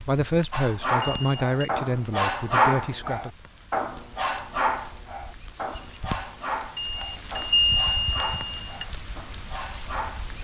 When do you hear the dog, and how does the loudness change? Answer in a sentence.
The dog can be heard from 0.5 to 10.3 s, getting quieter.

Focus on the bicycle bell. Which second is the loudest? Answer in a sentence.
The loudest moment of the bicycle bell is at 8 seconds.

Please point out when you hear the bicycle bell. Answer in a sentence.
You can hear the bicycle bell from 1.0 to 1.7 s and from 6.8 to 8.8 s.